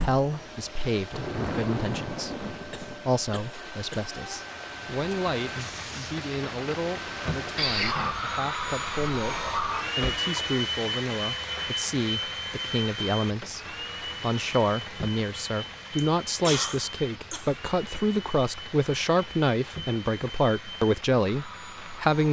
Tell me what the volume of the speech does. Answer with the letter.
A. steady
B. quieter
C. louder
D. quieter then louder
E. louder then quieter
C.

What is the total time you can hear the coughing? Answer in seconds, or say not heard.
4 s.